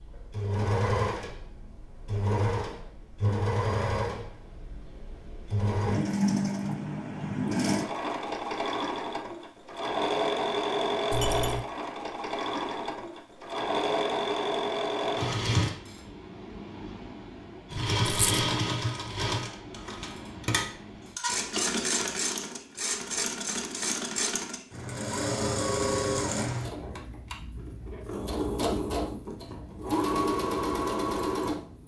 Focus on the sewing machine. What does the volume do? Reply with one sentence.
The loudness of the sewing machine stays about the same.